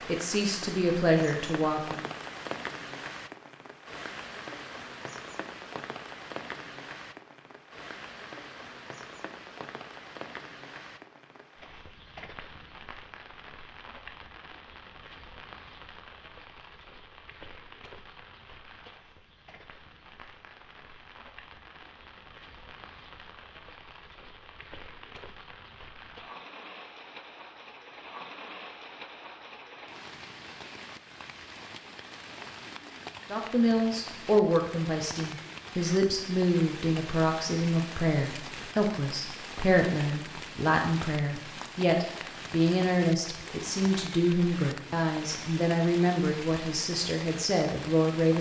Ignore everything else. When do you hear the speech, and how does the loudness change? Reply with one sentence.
The speech can be heard briefly from 0.1 to 2.0 s; and from 33.3 to 48.3 s, at a steady volume.